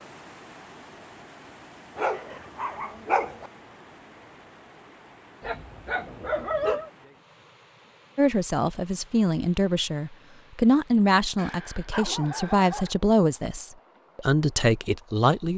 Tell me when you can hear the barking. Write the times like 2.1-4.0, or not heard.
1.9-3.5, 5.4-6.9, 11.3-12.9.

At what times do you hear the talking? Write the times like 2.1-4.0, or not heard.
8.2-15.5.